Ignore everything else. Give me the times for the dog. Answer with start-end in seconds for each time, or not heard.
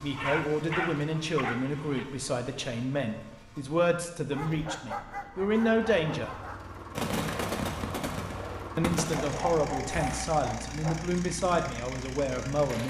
0.1-2.0, 4.3-6.6, 9.1-11.1.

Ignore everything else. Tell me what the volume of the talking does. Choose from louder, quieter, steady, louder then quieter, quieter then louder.
steady.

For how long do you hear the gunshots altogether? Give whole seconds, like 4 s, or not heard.
3 s.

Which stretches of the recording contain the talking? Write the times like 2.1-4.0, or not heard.
0.0-6.3, 8.8-12.8.